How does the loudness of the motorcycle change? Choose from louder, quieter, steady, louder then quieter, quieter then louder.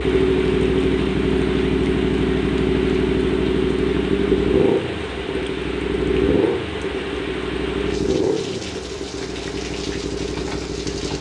quieter.